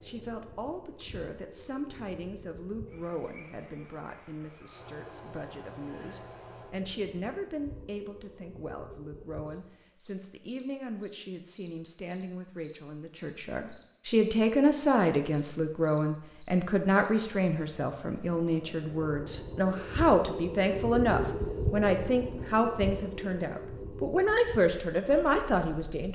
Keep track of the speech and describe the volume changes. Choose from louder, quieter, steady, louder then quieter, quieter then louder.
louder.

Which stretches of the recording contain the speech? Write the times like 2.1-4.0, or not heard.
0.0-26.0.